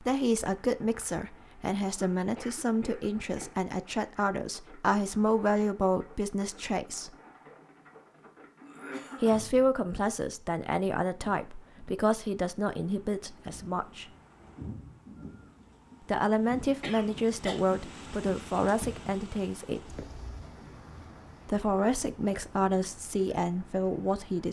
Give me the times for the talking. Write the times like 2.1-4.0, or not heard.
0.0-7.1, 9.2-14.1, 16.1-19.9, 21.4-24.4.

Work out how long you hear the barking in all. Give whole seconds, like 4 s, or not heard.
not heard.